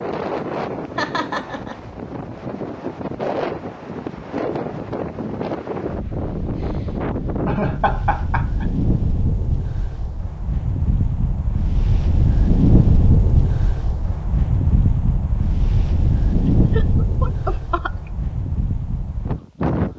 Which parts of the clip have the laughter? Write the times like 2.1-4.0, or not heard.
0.9-1.8, 7.5-8.7, 16.7-18.1.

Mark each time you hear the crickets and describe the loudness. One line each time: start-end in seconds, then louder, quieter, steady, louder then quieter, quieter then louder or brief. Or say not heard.
not heard.